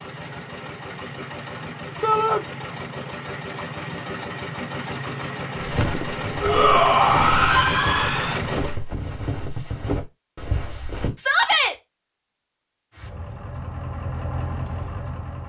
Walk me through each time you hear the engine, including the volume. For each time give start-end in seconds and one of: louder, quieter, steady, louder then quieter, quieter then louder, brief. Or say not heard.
0.0-8.8 louder
12.9-15.4 brief.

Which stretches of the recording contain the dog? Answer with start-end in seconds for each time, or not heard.
not heard.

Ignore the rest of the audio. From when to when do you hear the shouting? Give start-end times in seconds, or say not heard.
2.0-2.5, 6.4-8.4, 11.2-11.8.